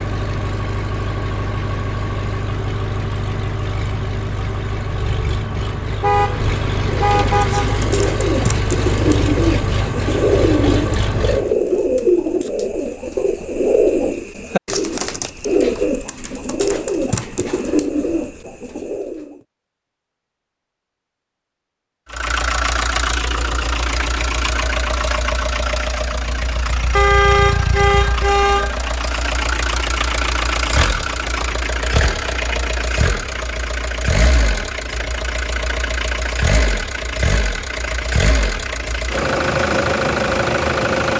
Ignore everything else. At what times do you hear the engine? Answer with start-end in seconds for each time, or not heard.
0.0-11.6, 22.1-41.1.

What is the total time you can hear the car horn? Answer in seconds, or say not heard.
4 s.